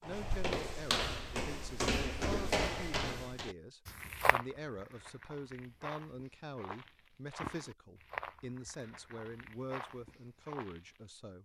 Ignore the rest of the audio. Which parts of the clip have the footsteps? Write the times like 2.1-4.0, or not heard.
0.0-11.0.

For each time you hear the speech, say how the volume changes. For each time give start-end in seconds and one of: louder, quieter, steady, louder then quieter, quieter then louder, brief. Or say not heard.
0.0-11.4 steady.